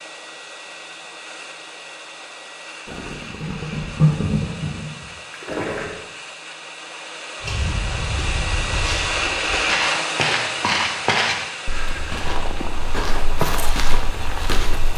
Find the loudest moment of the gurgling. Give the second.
4 s.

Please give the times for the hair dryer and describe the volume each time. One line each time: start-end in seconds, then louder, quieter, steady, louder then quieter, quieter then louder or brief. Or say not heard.
0.0-14.9 louder then quieter.